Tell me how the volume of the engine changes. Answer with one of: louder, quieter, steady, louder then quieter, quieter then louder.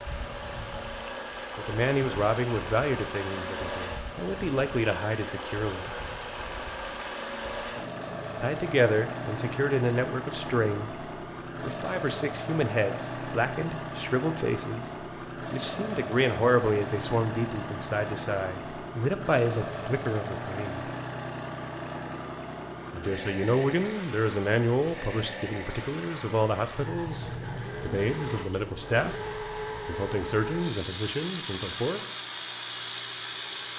steady.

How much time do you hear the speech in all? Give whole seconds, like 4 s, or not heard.
25 s.